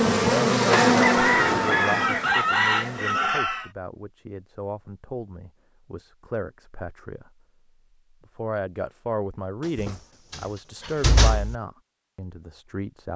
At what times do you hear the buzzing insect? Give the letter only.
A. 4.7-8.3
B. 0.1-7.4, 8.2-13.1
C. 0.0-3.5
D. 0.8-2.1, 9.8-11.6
C.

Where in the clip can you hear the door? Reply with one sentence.
The door can be heard from 0.8 to 2.1 s and from 9.8 to 11.6 s.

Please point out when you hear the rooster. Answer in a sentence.
You can hear the rooster from 0.1 to 3.7 s.